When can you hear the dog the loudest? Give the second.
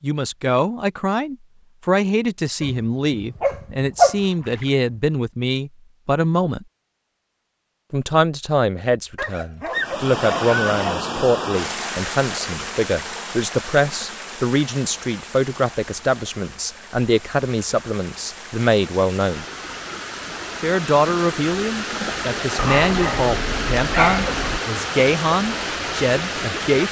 4 s.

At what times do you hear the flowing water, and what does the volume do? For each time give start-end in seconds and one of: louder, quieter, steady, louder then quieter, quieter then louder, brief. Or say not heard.
9.7-26.8 quieter then louder.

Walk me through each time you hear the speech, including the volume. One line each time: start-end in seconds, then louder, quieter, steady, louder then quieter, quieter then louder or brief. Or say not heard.
0.0-6.7 steady
7.9-19.4 steady
20.6-26.8 steady.